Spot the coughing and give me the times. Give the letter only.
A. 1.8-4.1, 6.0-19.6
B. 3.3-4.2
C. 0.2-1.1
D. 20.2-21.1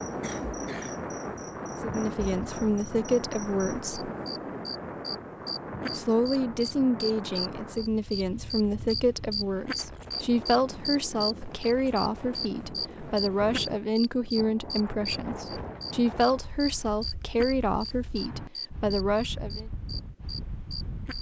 C.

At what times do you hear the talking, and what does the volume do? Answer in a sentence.
The talking can be heard briefly from 1.8 to 4.1 s; and from 6.0 to 19.6 s, at a steady volume.